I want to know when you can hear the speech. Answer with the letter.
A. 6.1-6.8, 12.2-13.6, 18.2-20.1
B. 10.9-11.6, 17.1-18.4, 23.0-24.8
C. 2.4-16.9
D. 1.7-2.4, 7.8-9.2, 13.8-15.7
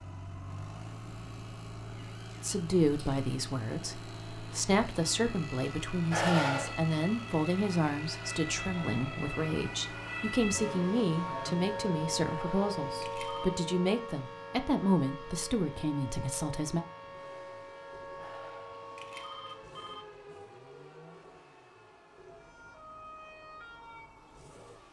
C.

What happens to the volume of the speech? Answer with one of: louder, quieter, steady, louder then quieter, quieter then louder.
steady.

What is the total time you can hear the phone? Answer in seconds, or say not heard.
4 s.